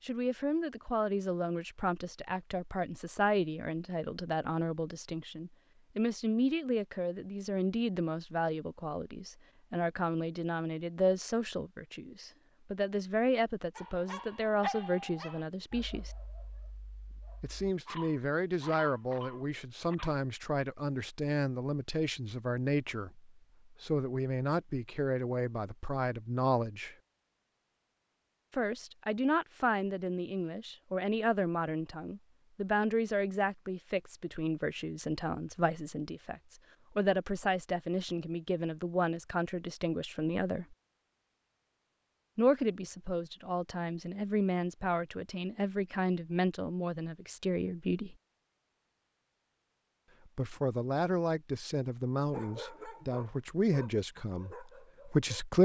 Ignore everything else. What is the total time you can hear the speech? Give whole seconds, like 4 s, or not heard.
49 s.